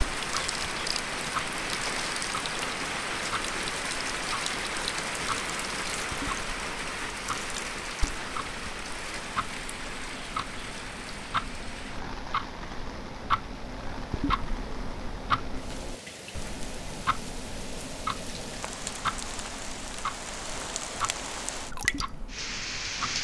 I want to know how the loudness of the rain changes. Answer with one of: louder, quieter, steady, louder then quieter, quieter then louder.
quieter then louder.